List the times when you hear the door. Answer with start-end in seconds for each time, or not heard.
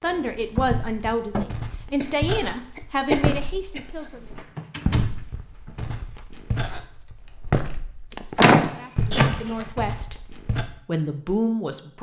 0.0-1.4, 4.3-6.2, 8.3-9.7.